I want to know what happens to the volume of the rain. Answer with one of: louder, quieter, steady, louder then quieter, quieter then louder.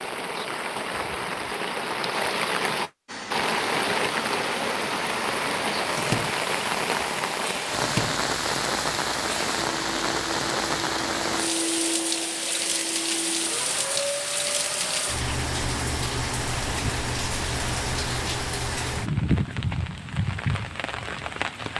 steady.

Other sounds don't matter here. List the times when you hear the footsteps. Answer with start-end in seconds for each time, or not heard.
not heard.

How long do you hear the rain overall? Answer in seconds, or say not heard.
22 s.